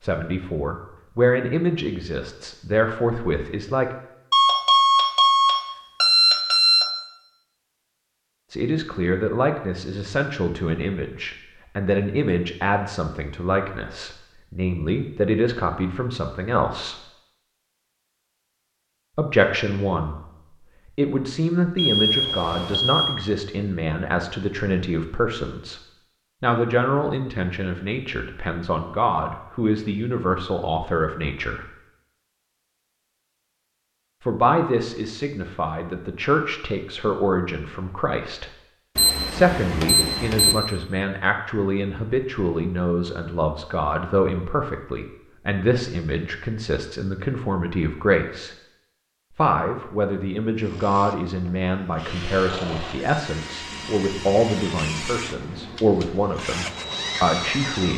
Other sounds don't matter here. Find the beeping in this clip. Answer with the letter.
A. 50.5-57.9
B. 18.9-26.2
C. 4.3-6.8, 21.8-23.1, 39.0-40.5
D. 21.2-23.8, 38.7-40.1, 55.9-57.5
C.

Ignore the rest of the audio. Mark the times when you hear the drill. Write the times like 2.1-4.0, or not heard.
50.5-57.9.